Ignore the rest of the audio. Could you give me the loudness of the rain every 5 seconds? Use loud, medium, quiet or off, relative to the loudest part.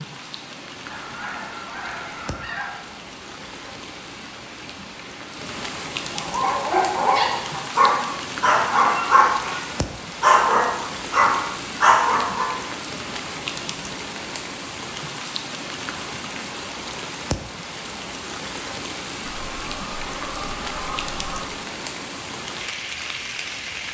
medium, loud, loud, loud, loud.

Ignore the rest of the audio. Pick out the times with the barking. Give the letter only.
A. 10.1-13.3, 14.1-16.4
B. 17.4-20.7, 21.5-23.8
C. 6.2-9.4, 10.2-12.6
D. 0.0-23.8
C.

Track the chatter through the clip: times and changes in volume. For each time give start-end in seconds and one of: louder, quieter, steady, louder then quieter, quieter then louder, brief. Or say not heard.
not heard.